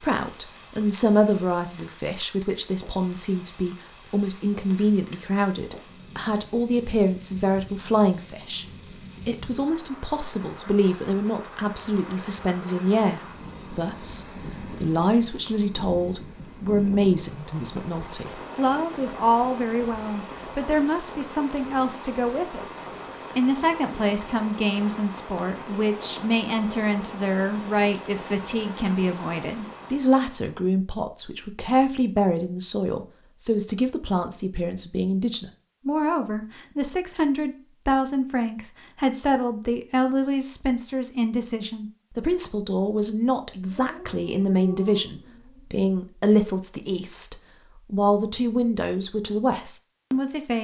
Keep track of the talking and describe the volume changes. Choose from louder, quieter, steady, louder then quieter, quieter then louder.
steady.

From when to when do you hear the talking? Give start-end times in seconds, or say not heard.
0.0-8.7, 9.2-50.6.